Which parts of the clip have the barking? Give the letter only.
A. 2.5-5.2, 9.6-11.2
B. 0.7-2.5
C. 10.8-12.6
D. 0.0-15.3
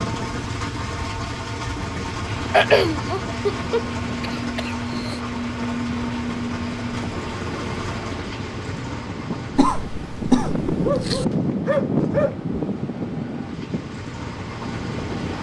C.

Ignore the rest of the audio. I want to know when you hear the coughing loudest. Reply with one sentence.
The volume of the coughing peaks at 3 seconds.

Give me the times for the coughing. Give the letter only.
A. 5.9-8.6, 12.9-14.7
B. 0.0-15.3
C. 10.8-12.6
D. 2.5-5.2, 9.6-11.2
D.